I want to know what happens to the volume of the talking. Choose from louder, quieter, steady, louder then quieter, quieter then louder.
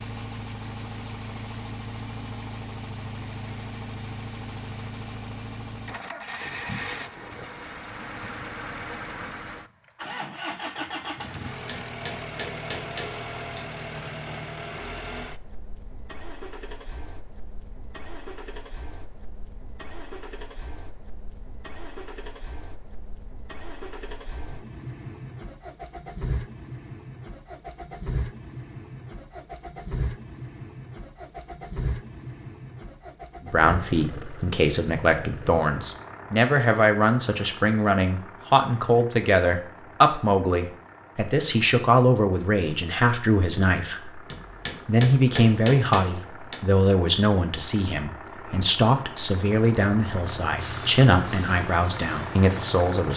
steady.